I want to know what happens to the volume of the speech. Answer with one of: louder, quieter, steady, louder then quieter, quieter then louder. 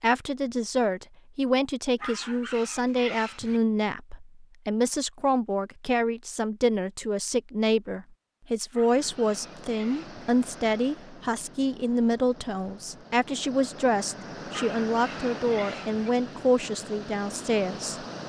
steady.